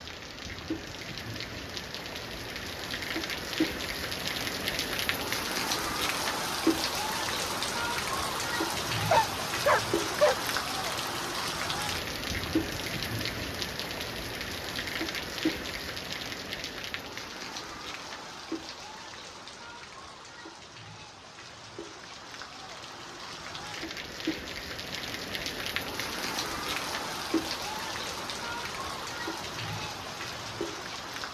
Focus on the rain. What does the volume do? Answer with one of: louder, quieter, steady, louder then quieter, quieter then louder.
quieter then louder.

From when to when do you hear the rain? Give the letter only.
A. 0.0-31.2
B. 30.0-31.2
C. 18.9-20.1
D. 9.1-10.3
A.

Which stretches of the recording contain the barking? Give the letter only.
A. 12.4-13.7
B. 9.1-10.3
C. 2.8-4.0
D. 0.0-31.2
B.